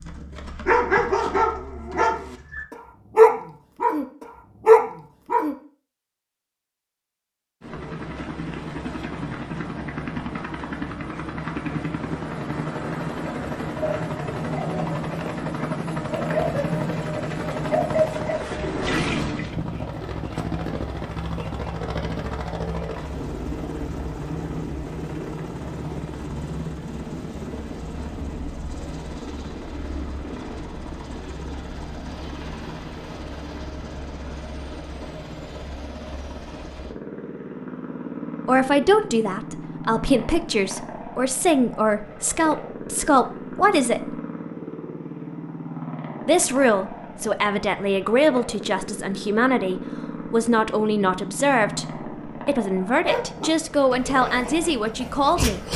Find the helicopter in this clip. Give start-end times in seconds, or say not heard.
7.6-55.7.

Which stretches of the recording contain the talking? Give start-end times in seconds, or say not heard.
38.5-44.1, 46.2-55.6.